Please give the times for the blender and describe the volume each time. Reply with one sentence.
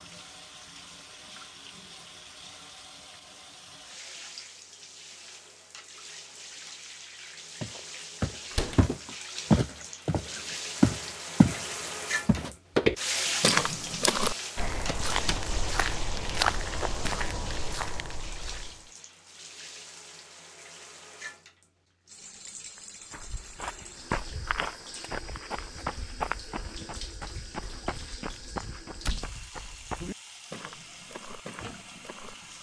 The blender can't be heard in this clip.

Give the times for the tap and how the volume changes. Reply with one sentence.
The tap can be heard from 0.0 to 32.5 s, getting louder then quieter.